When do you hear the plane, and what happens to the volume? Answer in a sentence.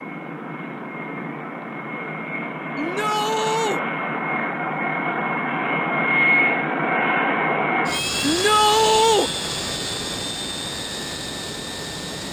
You can hear the plane from 0.0 to 12.2 s, getting louder then quieter.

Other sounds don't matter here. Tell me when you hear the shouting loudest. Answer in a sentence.
The volume of the shouting peaks at 9 seconds.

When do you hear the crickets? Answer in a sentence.
The crickets can't be heard in this clip.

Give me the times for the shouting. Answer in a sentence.
The shouting can be heard from 2.8 to 3.8 s and from 8.2 to 9.3 s.